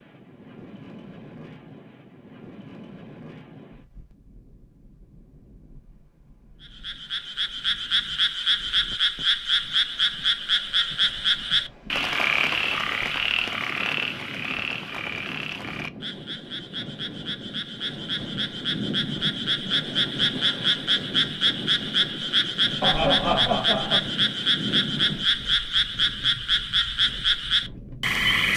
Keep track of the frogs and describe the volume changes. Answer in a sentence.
The volume of the frogs goes down, then up.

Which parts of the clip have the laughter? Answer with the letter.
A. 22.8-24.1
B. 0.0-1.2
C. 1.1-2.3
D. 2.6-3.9
A.